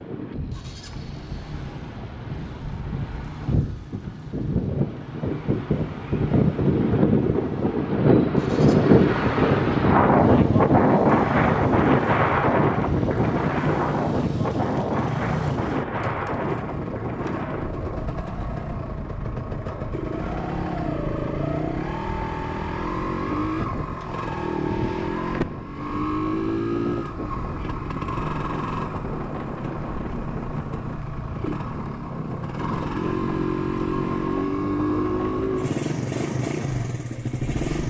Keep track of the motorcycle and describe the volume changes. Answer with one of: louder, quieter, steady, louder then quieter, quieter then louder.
louder.